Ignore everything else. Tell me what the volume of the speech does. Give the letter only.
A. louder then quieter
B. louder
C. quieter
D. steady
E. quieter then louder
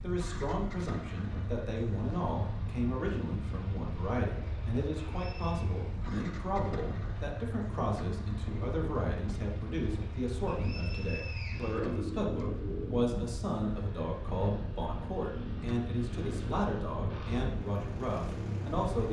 D.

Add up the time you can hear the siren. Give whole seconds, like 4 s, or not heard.
not heard.